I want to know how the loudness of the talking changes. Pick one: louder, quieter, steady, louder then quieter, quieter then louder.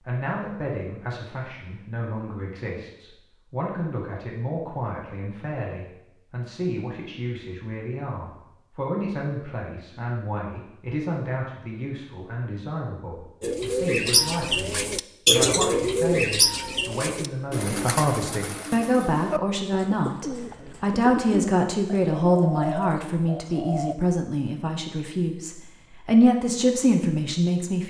louder.